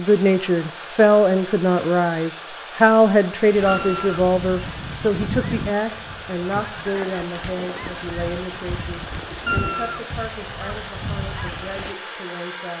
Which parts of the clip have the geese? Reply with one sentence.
The geese can be heard from 3.5 to 11.9 s.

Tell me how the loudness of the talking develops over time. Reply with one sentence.
The volume of the talking goes down.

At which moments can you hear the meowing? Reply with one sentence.
The meowing can be heard from 3.6 to 4.2 s and from 9.4 to 10.1 s.